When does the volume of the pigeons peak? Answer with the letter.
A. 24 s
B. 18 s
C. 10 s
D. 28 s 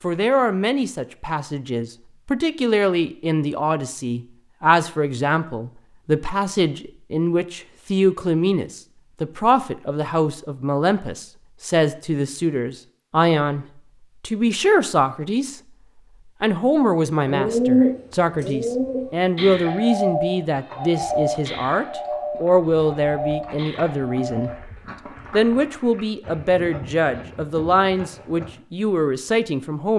B.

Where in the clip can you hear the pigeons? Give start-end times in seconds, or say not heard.
17.2-24.6.